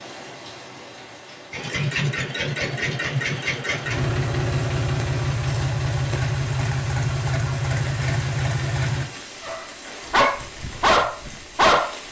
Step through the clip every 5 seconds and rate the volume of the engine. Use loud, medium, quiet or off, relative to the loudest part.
loud, loud, off.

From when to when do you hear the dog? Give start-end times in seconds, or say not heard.
9.4-11.9.